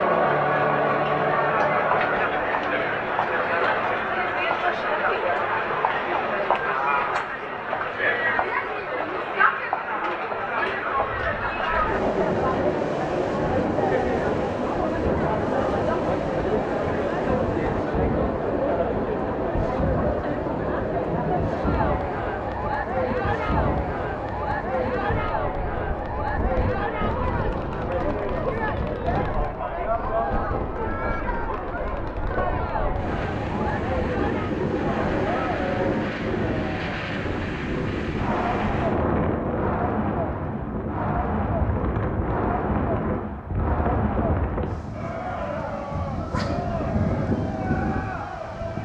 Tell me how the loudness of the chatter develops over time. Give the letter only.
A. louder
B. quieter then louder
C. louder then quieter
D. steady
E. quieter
E.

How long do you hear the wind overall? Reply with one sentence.
The wind can be heard for 38 seconds in total.